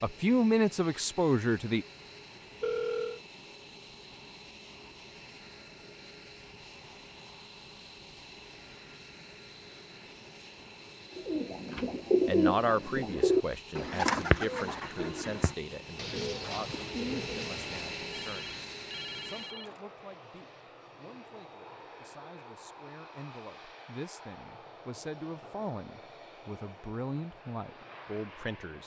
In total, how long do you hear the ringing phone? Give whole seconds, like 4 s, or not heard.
2 s.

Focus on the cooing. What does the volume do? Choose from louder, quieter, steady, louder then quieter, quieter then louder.
quieter.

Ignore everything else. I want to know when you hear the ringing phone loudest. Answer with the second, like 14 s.
3 s.